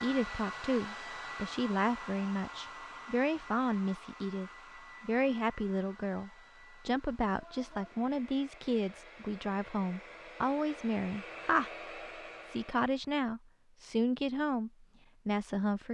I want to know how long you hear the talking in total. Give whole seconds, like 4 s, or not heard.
15 s.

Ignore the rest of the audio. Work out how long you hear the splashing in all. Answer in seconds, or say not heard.
not heard.